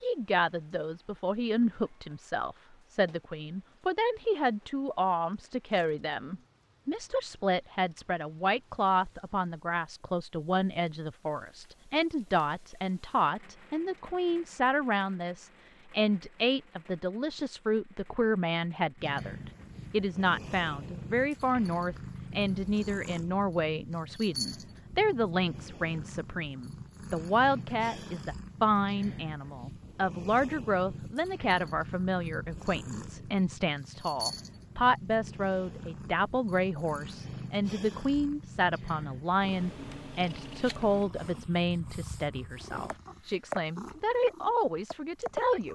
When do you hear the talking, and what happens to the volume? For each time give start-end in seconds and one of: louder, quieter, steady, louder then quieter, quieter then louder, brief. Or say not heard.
0.0-45.7 steady.